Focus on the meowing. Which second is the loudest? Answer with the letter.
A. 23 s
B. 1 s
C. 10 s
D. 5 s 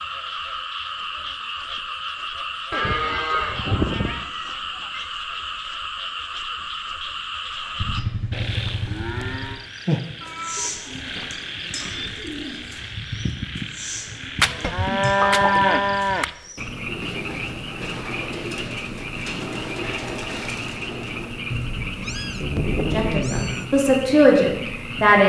A.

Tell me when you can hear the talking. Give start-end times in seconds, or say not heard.
22.8-25.2.